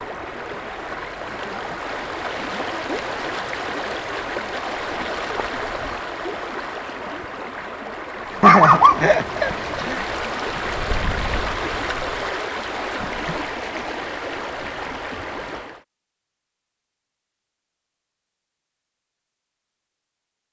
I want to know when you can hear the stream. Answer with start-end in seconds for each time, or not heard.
0.0-15.8.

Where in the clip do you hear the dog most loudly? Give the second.
9 s.